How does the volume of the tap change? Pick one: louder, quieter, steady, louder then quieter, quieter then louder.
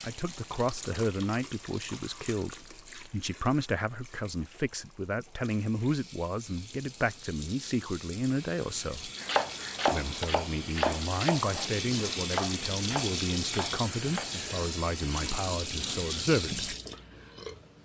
quieter then louder.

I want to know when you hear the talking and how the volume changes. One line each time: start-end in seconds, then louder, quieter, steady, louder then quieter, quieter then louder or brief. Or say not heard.
0.0-9.1 steady
9.9-16.7 steady.